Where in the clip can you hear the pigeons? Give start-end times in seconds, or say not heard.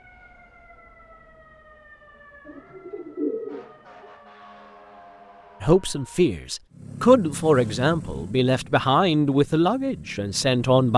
2.5-4.0.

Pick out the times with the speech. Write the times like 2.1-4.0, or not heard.
5.6-10.9.